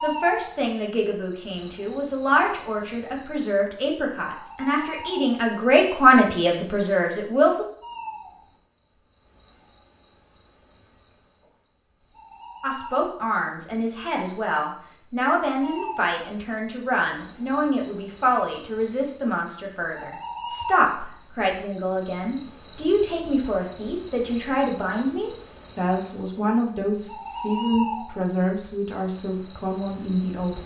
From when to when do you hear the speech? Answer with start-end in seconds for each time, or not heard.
0.0-7.7, 12.6-30.6.